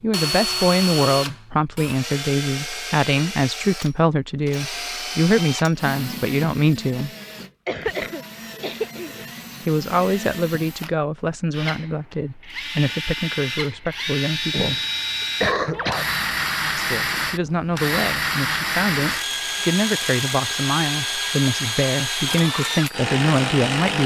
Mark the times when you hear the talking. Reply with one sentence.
The talking can be heard from 0.0 to 7.1 s, from 9.7 to 14.8 s and from 16.8 to 24.0 s.